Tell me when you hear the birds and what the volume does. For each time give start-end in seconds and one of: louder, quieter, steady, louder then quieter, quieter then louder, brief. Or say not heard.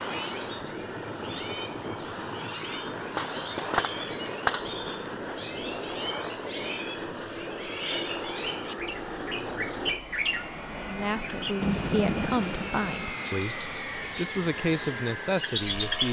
0.0-16.0 louder.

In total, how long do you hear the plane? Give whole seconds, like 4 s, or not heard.
16 s.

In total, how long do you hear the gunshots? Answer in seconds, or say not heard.
2 s.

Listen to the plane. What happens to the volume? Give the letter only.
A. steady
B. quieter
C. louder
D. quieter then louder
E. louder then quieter
A.